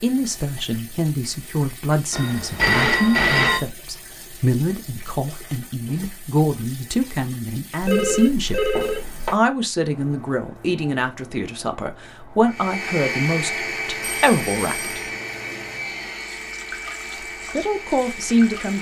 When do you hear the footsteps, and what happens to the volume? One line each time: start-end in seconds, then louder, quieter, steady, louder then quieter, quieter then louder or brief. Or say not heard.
not heard.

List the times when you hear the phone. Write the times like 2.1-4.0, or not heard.
2.1-3.6, 7.8-9.3, 14.0-15.1.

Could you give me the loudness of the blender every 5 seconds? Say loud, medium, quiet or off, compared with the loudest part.
off, off, loud, medium.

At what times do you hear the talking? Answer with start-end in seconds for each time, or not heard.
0.0-8.6, 9.3-15.0, 17.6-18.7.